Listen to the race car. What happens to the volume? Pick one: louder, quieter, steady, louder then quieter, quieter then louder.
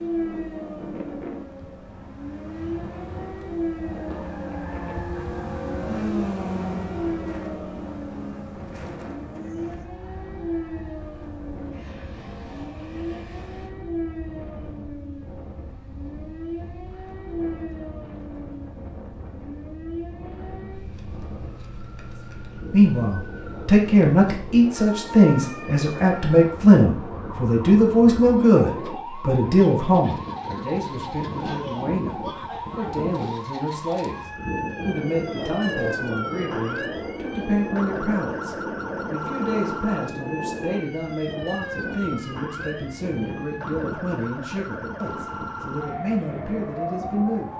louder then quieter.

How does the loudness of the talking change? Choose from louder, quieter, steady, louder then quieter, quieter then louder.
quieter.